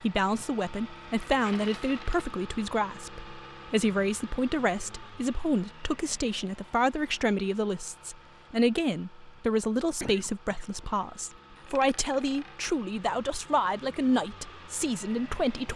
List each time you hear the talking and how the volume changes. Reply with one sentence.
The talking can be heard from 0.0 to 15.7 s, at a steady volume.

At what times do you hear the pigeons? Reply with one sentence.
You can't hear the pigeons here.